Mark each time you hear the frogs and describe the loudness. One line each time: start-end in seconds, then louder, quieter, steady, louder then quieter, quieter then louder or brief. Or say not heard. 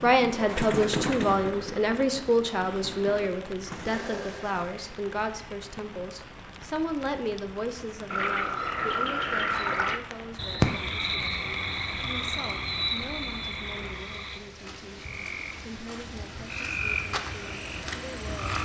8.1-18.6 quieter then louder.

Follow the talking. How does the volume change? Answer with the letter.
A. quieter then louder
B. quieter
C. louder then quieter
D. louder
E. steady
B.